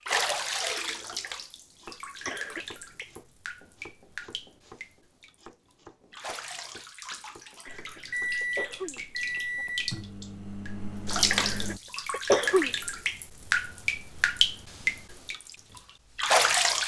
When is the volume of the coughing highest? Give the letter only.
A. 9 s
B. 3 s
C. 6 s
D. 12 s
D.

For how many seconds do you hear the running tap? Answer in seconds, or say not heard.
17 s.